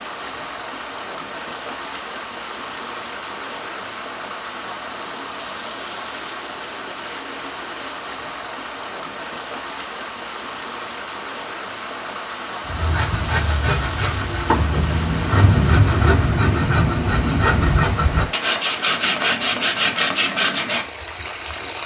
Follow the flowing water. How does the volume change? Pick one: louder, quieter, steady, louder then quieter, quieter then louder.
steady.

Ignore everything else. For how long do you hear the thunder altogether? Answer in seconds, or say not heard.
3 s.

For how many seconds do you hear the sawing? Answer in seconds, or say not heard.
8 s.